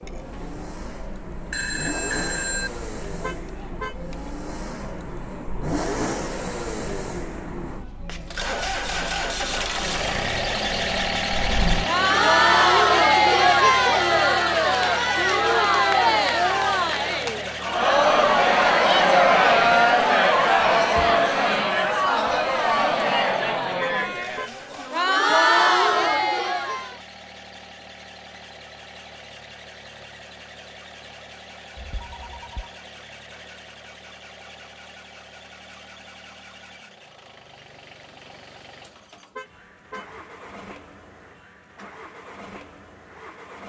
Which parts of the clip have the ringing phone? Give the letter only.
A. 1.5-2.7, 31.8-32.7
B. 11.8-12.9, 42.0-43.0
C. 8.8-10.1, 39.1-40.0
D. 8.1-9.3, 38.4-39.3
A.